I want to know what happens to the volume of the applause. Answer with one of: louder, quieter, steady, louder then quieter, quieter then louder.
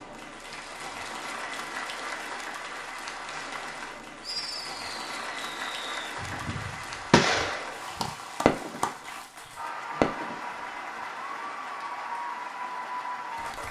steady.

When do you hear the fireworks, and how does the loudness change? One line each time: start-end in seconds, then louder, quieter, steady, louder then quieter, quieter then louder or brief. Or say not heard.
4.2-8.8 louder then quieter
10.0-10.4 brief.